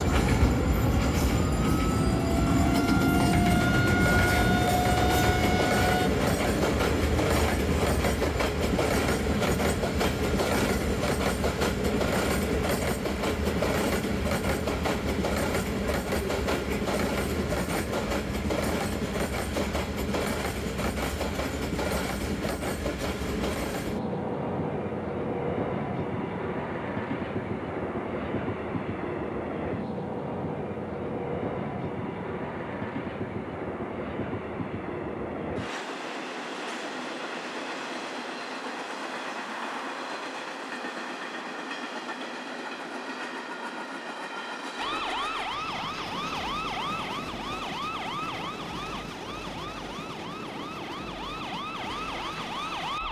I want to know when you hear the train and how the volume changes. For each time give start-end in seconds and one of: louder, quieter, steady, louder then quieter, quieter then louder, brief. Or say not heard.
0.0-53.0 quieter.